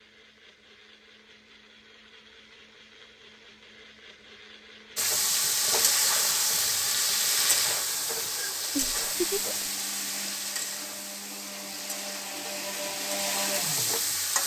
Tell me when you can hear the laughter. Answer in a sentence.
You can hear the laughter from 8.8 to 9.7 s.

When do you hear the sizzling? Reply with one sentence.
You can hear the sizzling from 5.0 to 14.4 s.